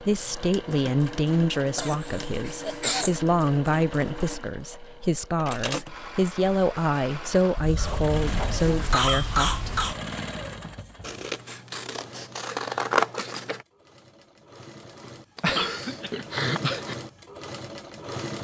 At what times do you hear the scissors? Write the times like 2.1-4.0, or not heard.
11.0-13.7.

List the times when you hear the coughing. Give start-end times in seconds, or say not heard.
1.8-3.1, 7.5-10.0, 15.3-16.9.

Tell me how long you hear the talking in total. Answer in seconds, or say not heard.
10 s.